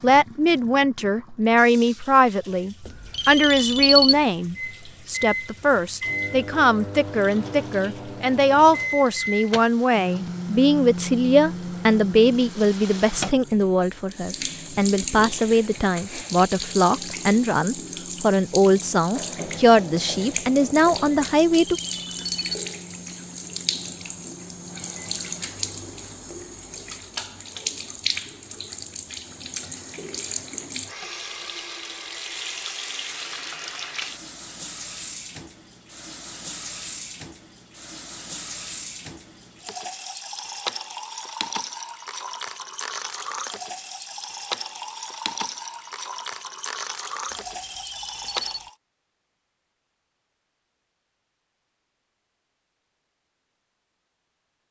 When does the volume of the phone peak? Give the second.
4 s.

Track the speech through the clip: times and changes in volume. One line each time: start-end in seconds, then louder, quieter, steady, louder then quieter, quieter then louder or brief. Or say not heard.
0.0-21.8 steady.